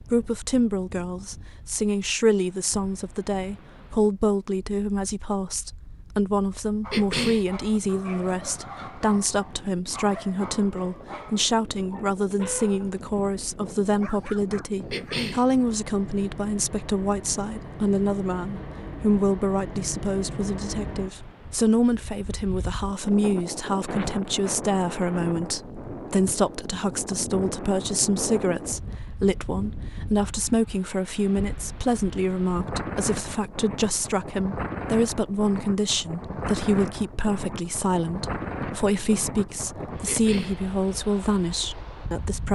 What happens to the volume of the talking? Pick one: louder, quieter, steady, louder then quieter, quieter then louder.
steady.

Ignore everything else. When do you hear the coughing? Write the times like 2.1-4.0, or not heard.
6.9-7.5, 14.9-15.4, 40.0-40.6.